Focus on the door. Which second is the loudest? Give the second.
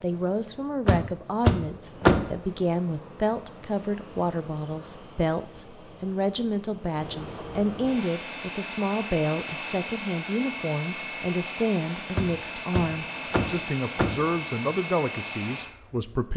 2 s.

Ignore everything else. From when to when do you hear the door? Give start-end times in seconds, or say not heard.
0.8-2.2, 12.2-14.3.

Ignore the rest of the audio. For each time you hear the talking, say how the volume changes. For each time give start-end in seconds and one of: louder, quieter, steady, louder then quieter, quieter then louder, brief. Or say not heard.
0.0-16.3 steady.